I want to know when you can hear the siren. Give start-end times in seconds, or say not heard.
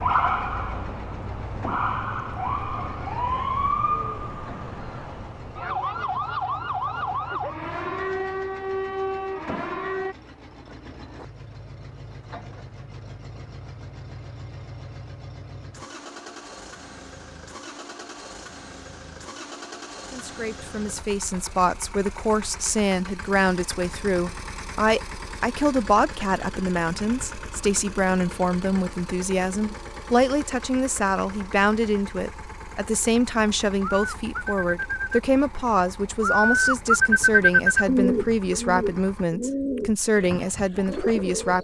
0.0-10.2.